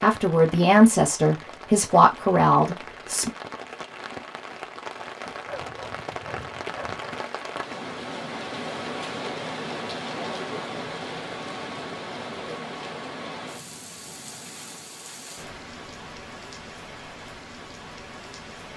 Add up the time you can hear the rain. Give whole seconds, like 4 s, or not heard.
19 s.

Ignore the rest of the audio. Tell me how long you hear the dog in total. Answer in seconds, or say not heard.
2 s.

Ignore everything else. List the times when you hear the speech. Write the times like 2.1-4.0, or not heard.
0.0-3.3.